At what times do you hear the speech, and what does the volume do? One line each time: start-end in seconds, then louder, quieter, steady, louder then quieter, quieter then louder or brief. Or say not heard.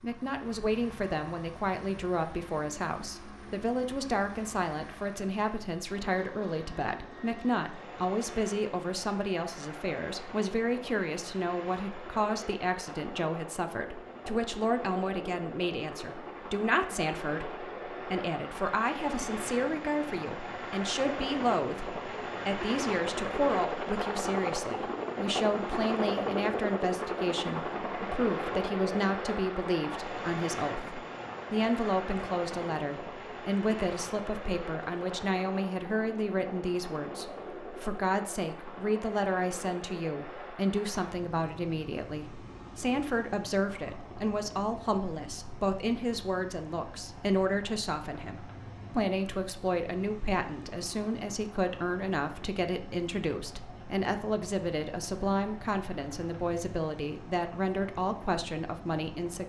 0.0-59.4 steady.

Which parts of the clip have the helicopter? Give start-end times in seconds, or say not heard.
0.0-59.4.